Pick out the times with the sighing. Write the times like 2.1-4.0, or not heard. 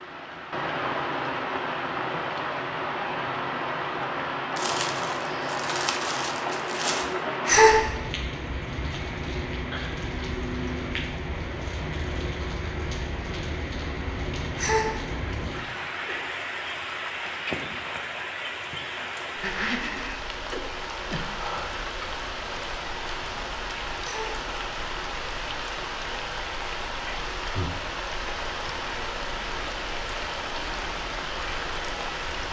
7.5-7.9, 14.6-15.0, 24.0-24.4.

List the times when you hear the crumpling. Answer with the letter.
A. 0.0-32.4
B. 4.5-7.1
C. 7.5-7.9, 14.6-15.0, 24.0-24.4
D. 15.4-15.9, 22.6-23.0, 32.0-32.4
B.